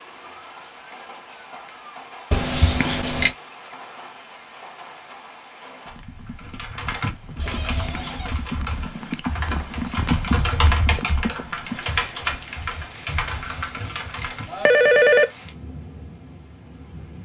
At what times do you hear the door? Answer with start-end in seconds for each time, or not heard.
7.3-8.4.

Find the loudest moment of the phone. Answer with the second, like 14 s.
15 s.